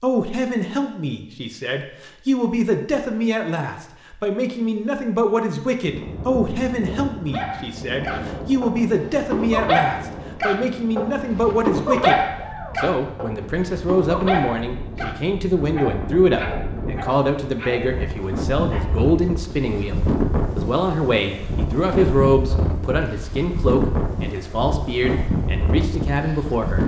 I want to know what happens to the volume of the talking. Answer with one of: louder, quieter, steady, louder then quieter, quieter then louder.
steady.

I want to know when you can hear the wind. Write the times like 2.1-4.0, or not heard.
5.8-26.8.